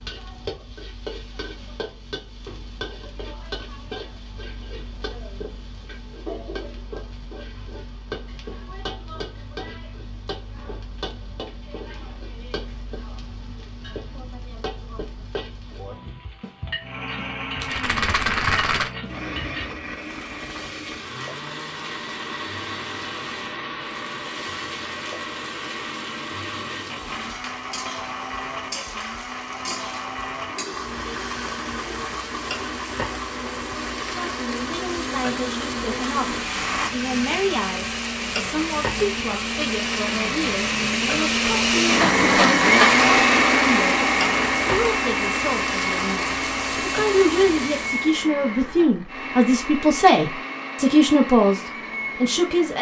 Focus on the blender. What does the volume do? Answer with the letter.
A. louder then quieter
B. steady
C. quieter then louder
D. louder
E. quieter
A.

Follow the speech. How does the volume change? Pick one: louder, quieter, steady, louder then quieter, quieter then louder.
louder.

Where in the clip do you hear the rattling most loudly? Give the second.
18 s.